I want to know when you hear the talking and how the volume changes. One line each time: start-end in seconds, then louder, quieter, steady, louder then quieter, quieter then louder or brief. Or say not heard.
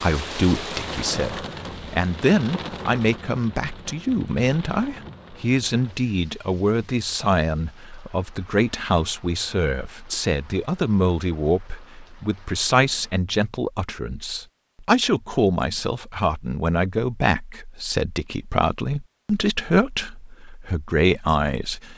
0.0-21.9 steady.